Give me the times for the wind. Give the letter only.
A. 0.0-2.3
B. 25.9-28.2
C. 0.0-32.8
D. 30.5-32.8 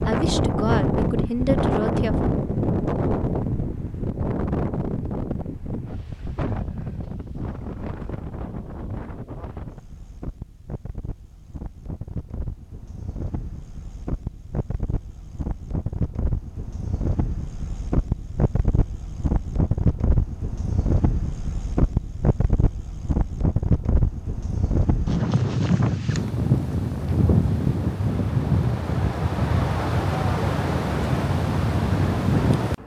C.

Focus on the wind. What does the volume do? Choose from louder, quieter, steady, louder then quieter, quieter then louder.
quieter then louder.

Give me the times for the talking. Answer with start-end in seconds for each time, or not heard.
0.0-2.3.